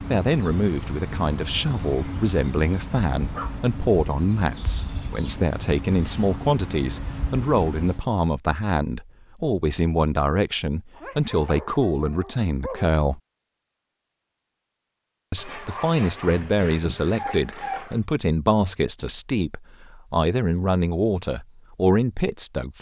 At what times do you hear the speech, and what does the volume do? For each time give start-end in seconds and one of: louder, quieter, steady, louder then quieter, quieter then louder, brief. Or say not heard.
0.1-13.2 steady
15.3-22.7 steady.